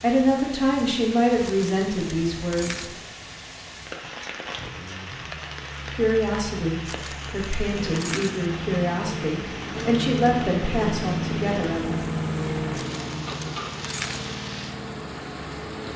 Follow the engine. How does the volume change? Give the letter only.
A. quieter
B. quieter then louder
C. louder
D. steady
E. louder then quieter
E.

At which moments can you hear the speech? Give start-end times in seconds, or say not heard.
0.0-2.9, 6.0-11.9.